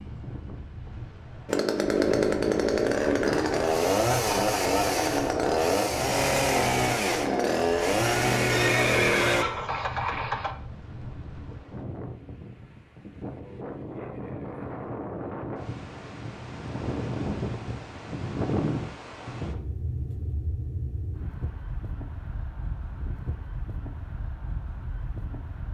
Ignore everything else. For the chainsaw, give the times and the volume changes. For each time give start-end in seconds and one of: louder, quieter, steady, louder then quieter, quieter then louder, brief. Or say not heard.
1.4-9.4 steady.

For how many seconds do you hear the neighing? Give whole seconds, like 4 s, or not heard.
2 s.